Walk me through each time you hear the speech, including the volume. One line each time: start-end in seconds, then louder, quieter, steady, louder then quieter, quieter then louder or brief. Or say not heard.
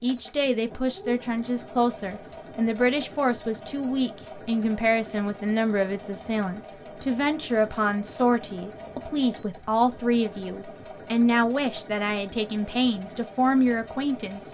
0.0-14.4 steady.